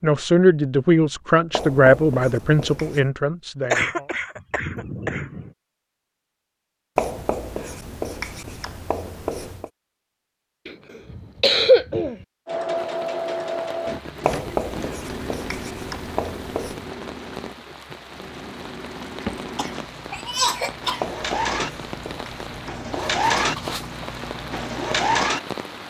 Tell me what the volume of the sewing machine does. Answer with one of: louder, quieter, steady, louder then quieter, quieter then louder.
quieter then louder.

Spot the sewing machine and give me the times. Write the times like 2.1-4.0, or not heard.
12.4-25.8.